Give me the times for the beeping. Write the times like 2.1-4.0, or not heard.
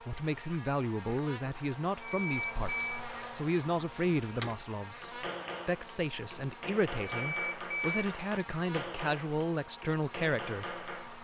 2.0-3.0, 7.0-8.1.